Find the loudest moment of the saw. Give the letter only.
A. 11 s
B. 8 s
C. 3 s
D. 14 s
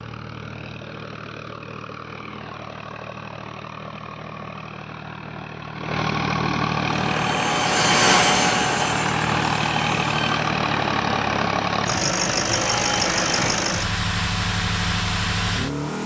B.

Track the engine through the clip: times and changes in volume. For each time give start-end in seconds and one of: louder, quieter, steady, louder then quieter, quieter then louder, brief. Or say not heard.
0.0-16.0 louder.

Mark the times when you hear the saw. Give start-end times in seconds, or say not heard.
6.8-13.8.